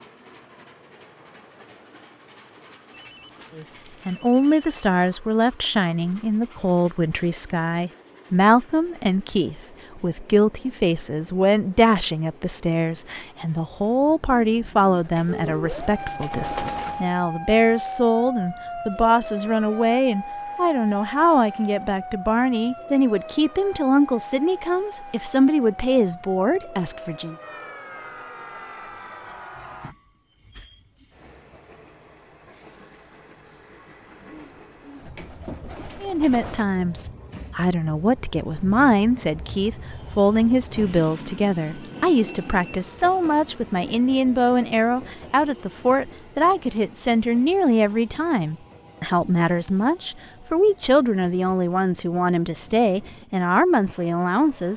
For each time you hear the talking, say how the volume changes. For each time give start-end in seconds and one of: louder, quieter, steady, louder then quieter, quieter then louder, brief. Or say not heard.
3.5-27.4 steady
36.0-54.7 steady.